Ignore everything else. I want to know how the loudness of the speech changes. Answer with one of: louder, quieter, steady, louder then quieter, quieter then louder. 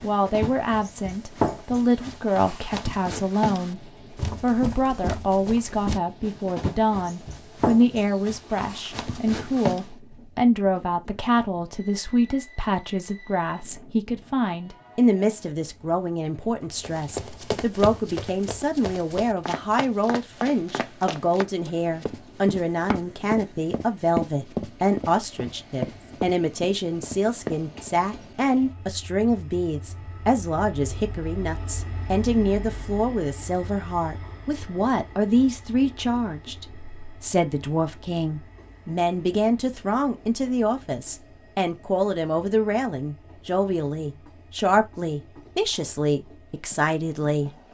steady.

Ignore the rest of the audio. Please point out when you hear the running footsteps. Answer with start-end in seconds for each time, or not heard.
0.0-9.8, 16.8-27.9.